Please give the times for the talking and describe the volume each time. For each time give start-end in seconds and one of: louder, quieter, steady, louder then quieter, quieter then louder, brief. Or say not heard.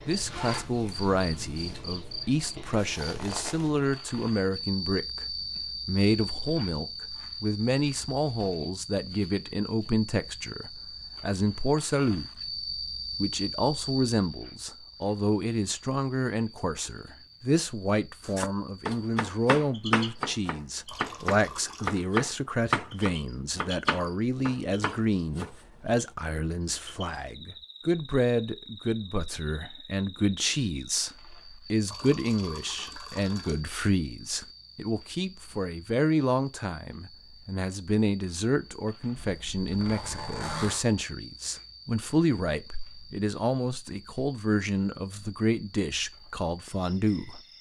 0.1-12.2 steady
13.2-47.4 steady.